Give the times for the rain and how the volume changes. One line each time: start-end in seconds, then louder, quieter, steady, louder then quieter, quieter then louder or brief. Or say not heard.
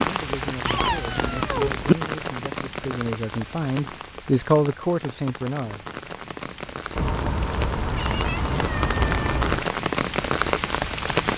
0.0-11.3 quieter then louder.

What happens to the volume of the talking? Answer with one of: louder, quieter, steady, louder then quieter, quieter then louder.
louder.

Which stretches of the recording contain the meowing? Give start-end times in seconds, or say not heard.
0.7-1.9, 7.0-9.7.